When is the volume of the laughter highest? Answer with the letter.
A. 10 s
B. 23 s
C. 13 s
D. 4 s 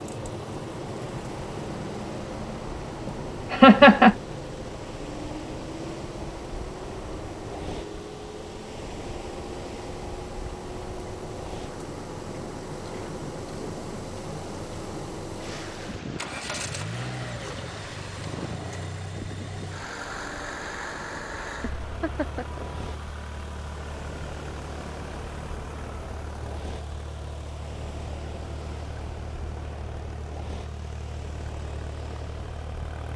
D.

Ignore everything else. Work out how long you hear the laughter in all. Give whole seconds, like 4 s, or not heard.
2 s.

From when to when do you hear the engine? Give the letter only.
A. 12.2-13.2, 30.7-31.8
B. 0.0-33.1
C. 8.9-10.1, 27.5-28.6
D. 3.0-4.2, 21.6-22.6
B.